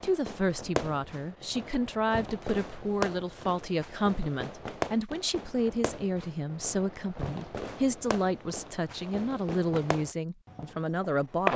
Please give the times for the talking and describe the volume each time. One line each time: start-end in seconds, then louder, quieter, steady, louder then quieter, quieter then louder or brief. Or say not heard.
0.0-11.5 steady.